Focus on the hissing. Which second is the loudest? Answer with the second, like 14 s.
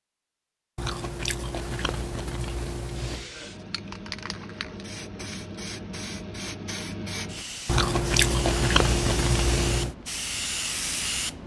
11 s.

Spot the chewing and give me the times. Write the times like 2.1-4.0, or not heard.
0.8-3.3, 7.7-9.9.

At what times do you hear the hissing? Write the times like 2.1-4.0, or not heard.
2.9-11.4.